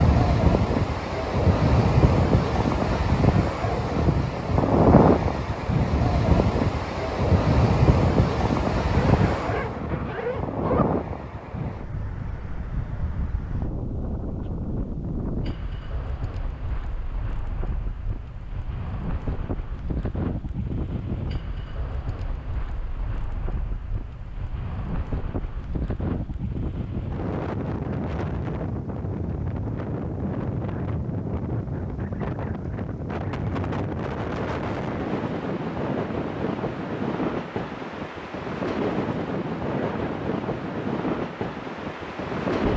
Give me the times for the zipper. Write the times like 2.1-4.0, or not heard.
8.8-10.8, 39.7-40.2.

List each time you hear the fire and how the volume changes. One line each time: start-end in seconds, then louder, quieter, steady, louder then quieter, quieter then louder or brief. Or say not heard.
not heard.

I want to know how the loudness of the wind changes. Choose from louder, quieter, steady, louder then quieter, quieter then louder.
quieter then louder.